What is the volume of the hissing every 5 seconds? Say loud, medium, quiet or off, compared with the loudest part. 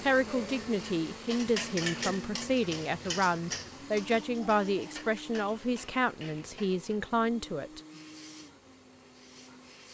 off, loud.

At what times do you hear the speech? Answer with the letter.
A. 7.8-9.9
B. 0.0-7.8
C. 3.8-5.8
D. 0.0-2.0
B.